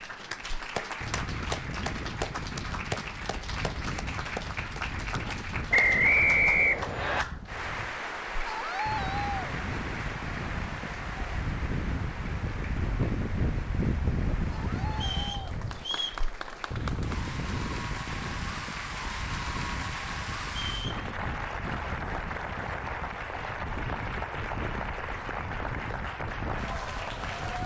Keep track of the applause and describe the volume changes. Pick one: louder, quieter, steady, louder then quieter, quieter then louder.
quieter then louder.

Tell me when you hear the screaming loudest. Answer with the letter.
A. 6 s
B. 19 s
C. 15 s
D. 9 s
D.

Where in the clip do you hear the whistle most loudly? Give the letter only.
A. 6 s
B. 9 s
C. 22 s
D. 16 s
A.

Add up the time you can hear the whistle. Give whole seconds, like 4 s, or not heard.
3 s.